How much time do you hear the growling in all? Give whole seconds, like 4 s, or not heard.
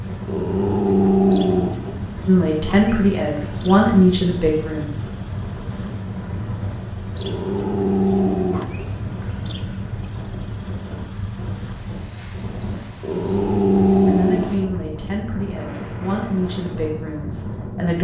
5 s.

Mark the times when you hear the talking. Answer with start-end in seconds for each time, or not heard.
2.2-5.0, 14.1-17.9.